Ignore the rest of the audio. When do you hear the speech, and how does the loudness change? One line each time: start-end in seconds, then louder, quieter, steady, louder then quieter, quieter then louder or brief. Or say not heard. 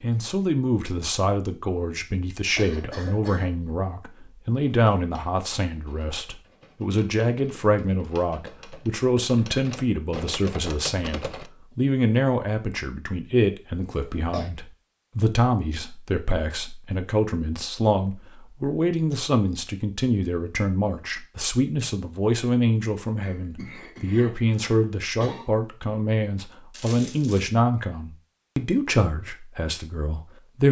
0.0-30.6 steady.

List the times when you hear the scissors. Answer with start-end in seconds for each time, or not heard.
not heard.